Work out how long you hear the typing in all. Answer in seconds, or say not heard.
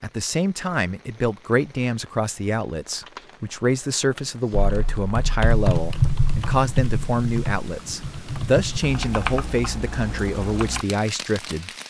6 s.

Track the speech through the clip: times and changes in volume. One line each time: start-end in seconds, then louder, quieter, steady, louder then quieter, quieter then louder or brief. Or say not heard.
0.0-11.7 steady.